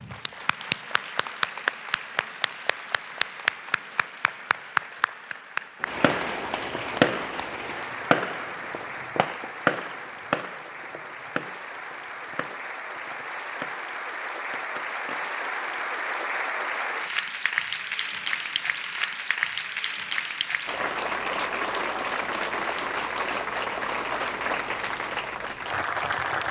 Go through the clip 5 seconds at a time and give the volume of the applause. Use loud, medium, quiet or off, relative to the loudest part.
loud, medium, medium, loud, loud, loud.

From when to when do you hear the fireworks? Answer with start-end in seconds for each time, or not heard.
5.8-15.3.